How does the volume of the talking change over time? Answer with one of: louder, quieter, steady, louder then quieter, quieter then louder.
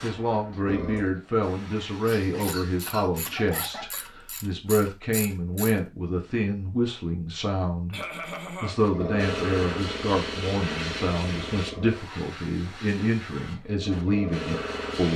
steady.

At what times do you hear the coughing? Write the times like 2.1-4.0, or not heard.
2.0-4.0, 7.9-8.8.